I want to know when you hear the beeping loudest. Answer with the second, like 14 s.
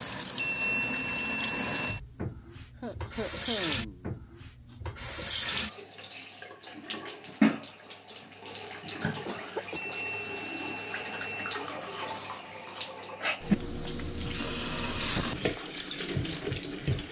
1 s.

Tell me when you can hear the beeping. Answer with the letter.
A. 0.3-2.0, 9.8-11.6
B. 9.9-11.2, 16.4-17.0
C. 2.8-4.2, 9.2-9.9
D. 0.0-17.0
A.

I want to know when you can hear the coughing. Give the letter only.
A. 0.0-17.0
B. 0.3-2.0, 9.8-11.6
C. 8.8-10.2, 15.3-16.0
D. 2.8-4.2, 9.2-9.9
D.